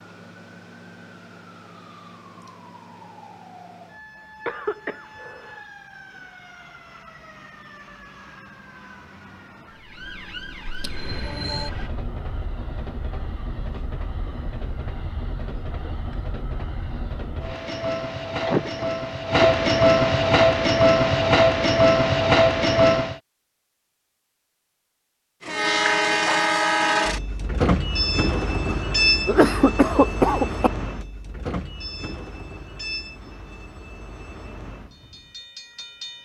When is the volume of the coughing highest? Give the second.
30 s.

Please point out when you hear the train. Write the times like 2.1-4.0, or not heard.
10.8-23.2, 25.4-36.1.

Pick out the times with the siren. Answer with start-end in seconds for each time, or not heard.
0.0-11.9.